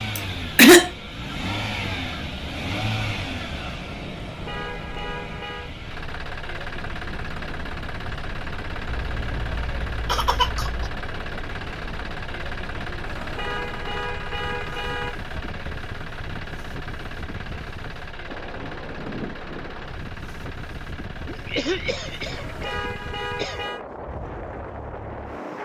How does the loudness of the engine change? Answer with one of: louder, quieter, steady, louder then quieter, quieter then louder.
quieter.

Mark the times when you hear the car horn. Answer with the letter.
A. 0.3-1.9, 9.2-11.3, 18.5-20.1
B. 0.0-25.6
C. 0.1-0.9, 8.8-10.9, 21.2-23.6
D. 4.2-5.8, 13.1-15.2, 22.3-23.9
D.